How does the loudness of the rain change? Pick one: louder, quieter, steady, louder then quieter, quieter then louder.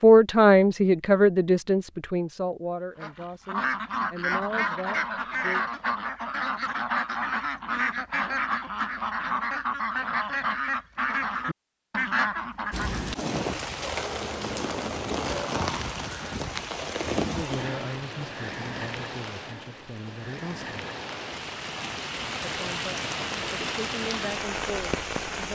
quieter then louder.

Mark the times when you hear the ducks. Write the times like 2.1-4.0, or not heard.
3.0-13.0.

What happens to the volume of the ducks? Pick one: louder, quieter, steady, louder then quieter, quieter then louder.
steady.